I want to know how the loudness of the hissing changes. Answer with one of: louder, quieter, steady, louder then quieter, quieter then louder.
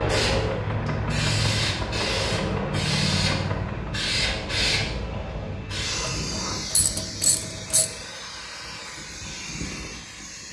quieter.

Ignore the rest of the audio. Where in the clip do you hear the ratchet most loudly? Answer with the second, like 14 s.
7 s.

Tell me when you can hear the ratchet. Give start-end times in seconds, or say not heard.
5.9-7.9.